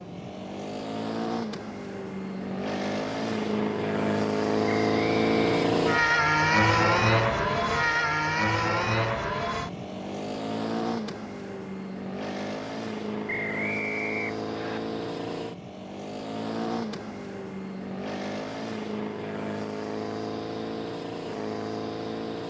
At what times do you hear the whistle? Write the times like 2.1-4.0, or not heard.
4.7-5.6, 13.2-14.8.